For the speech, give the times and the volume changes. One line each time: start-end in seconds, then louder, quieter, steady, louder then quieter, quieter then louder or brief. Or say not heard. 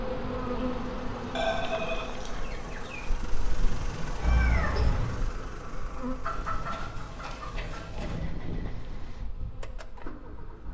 not heard.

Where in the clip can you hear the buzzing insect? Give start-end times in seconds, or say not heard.
0.0-10.6.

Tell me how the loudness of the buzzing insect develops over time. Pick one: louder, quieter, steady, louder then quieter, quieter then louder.
quieter.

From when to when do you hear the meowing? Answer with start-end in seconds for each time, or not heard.
4.2-5.2.